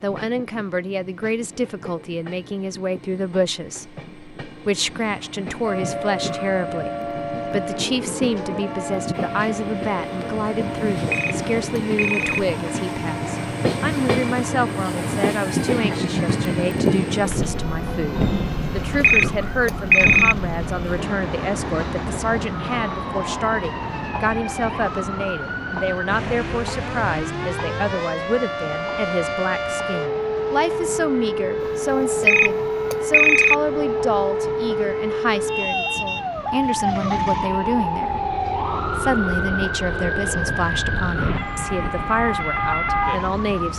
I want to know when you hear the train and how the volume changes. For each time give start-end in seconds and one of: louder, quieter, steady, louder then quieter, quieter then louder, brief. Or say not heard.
0.0-43.7 louder then quieter.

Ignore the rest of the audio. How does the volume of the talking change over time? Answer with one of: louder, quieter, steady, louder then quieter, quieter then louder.
steady.